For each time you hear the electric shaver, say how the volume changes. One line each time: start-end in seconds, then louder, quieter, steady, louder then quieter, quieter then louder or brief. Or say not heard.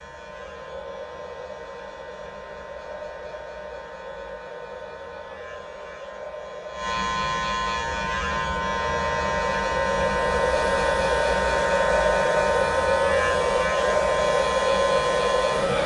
0.0-15.8 louder.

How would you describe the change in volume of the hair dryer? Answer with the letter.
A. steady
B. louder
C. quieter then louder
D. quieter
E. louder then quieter
B.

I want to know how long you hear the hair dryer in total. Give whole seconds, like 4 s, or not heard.
16 s.